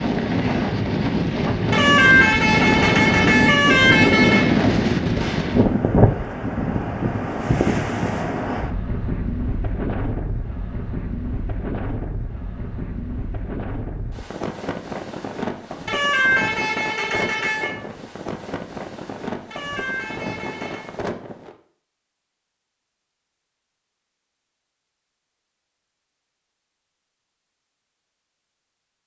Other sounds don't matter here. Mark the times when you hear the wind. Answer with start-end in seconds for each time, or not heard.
0.0-21.6.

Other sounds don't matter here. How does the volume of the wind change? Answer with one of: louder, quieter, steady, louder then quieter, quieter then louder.
quieter.